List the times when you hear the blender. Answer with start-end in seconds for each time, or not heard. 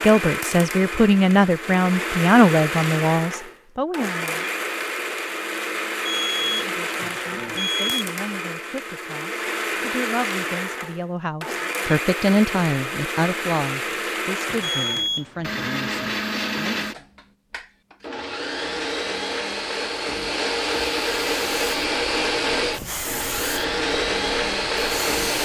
0.0-25.4.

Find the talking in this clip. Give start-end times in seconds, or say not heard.
0.0-4.5, 6.5-17.1.